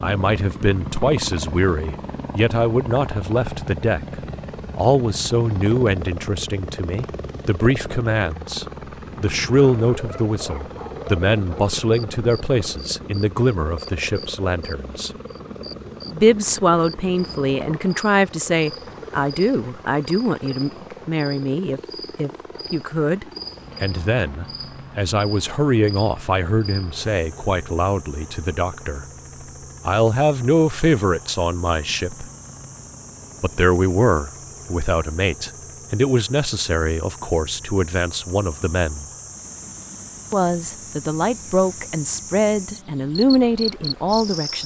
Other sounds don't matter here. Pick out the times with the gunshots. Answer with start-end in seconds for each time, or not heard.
not heard.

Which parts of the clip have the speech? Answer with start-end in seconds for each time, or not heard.
0.0-4.2, 4.8-15.1, 16.1-29.1, 29.9-32.2, 33.4-39.0, 40.3-44.6.